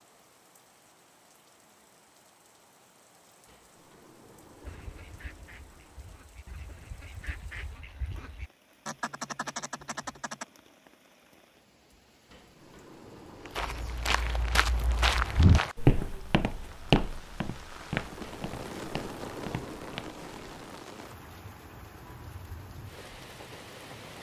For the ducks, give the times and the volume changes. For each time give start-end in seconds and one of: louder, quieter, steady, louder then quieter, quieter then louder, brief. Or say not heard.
4.6-10.4 louder.